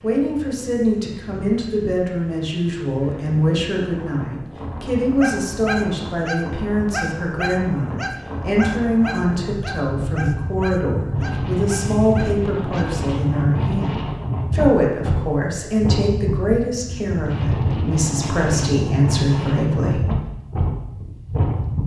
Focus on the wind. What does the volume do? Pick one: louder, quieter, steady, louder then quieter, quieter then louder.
louder.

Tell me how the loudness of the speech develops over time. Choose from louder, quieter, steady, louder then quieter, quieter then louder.
steady.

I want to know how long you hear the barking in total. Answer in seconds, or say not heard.
8 s.